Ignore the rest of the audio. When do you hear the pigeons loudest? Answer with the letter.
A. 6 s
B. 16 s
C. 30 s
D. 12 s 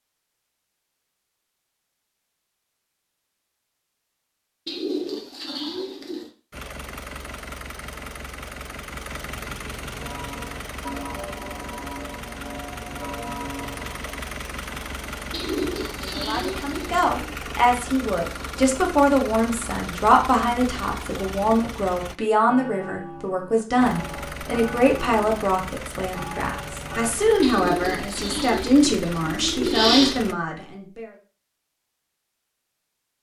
C.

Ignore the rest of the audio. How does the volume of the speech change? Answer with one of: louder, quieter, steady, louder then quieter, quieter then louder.
steady.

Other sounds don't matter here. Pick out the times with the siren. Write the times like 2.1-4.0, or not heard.
not heard.